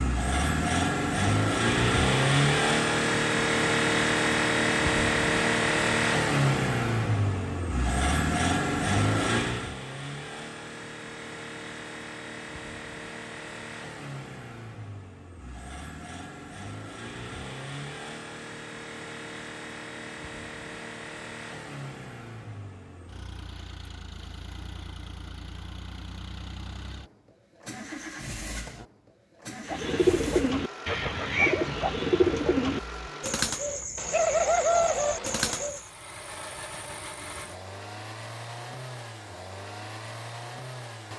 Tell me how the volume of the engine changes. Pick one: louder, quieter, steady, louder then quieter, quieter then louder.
quieter.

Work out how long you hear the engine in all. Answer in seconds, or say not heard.
41 s.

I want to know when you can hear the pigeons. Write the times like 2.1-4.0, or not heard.
29.6-35.9.